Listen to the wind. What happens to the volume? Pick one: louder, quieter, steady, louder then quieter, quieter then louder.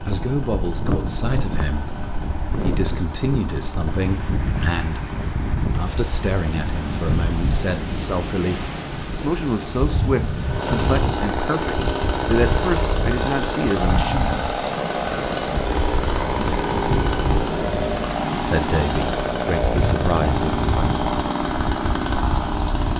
steady.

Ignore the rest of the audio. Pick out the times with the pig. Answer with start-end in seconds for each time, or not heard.
not heard.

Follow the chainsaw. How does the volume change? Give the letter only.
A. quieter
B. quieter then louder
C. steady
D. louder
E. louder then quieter
D.